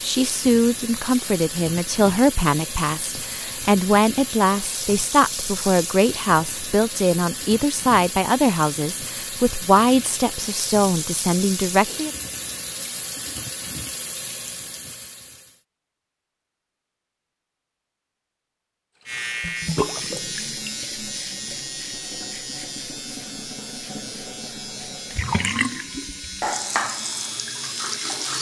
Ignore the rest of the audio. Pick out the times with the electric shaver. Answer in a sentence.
The electric shaver can be heard from 19.1 to 28.3 s.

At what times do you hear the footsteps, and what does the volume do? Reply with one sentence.
The footsteps can't be heard in this clip.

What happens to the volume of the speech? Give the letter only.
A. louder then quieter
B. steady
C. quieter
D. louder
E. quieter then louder
B.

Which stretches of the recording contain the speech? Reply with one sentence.
The speech can be heard from 0.0 to 12.1 s.